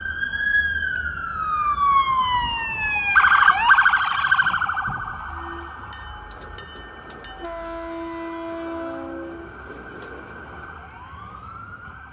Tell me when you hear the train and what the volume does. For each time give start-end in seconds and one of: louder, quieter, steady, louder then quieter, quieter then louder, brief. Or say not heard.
5.2-10.8 louder then quieter.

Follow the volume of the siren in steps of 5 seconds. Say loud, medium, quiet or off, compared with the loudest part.
loud, quiet, quiet.